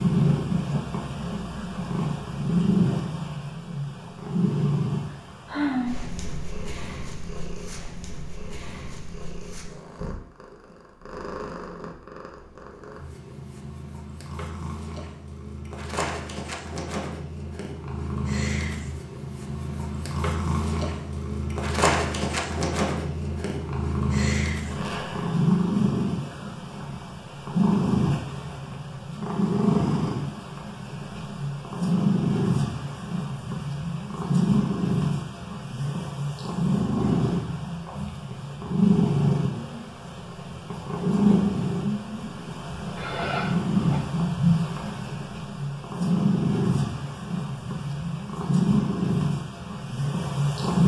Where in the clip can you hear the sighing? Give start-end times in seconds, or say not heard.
5.5-6.0, 43.0-44.0.